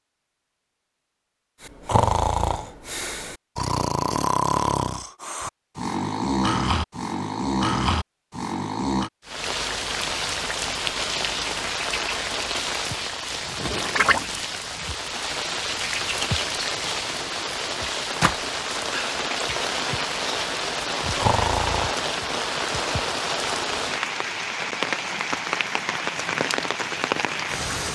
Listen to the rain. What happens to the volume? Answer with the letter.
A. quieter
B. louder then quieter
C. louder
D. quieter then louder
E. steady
E.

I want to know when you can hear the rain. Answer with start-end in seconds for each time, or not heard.
9.2-27.9.